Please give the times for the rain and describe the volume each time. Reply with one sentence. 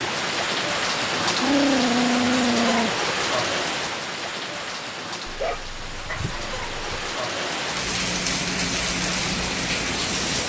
You can hear the rain from 0.0 to 10.4 s, getting quieter then louder.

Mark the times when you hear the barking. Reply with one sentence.
You can hear the barking from 1.4 to 3.0 s and from 5.2 to 7.2 s.